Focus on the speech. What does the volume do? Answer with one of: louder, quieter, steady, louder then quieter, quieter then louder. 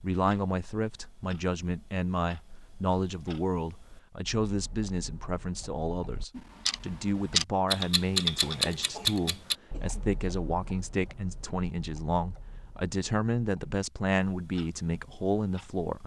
steady.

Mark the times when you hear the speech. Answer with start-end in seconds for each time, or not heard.
0.0-16.0.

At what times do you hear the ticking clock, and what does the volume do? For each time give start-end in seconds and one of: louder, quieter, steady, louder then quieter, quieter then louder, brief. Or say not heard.
0.0-16.0 louder then quieter.